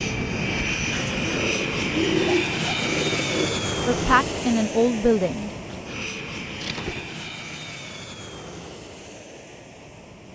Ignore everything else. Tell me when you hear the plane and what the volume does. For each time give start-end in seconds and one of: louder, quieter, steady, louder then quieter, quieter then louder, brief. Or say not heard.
0.0-10.3 quieter.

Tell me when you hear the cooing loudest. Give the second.
2 s.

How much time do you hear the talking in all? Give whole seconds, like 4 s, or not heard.
2 s.